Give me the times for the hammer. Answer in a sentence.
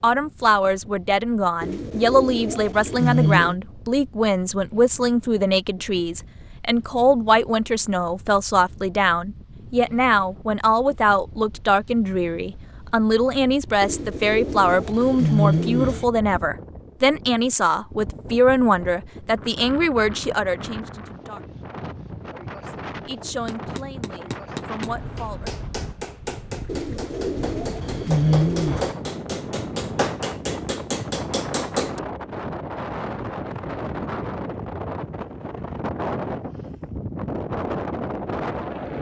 The hammer can be heard from 23.4 to 32.0 s.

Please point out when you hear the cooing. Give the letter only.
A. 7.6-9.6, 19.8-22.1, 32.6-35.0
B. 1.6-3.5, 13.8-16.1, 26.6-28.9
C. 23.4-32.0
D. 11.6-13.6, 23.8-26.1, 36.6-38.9
B.